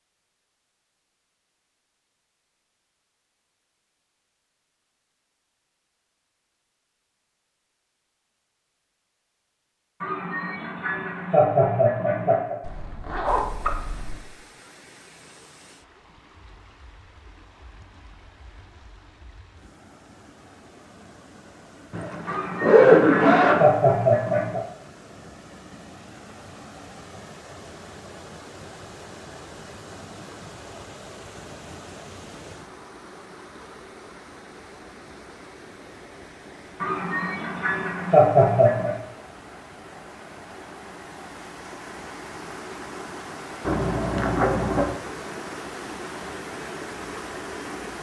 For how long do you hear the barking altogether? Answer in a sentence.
The barking can't be heard in this clip.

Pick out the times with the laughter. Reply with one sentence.
The laughter can be heard from 10.0 to 12.6 s, from 22.2 to 24.6 s and from 36.8 to 39.0 s.